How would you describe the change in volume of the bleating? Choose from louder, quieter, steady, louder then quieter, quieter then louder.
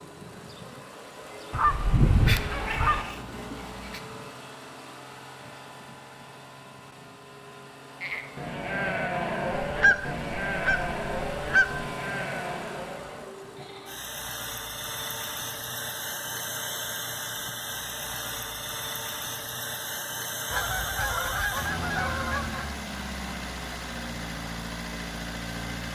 quieter.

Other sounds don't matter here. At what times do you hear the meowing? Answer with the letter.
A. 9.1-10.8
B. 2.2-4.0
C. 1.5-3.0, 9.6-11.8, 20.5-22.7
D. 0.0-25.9
B.